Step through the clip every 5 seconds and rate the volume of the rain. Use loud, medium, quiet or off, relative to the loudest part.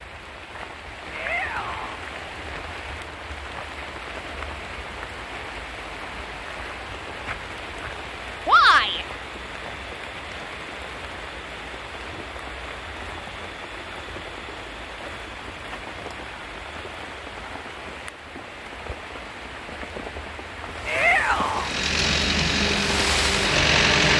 medium, medium, medium, medium, loud.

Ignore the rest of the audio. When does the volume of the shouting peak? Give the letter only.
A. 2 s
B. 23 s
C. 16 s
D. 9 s
D.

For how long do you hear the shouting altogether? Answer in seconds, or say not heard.
2 s.